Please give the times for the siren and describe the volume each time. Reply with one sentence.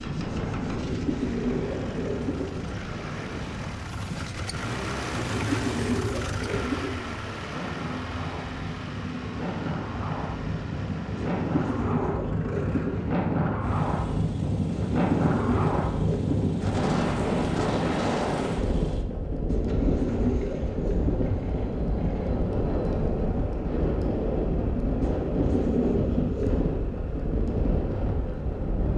The siren can't be heard in this clip.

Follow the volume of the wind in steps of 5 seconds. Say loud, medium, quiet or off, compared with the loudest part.
medium, medium, loud, loud, loud, loud.